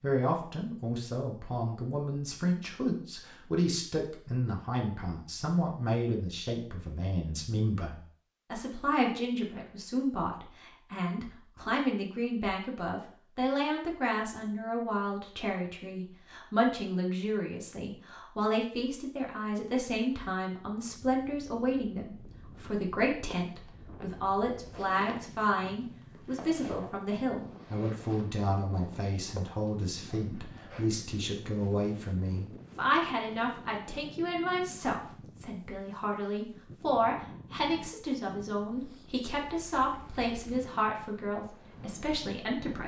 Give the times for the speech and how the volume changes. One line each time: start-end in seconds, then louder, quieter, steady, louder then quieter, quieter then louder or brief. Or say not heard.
0.0-42.8 steady.